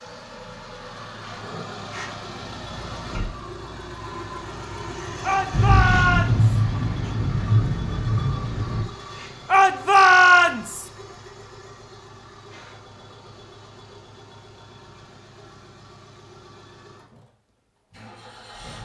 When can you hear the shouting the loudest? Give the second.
10 s.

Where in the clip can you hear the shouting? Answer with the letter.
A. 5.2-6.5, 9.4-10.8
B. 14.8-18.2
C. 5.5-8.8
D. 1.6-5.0
A.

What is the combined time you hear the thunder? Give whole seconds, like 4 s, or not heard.
3 s.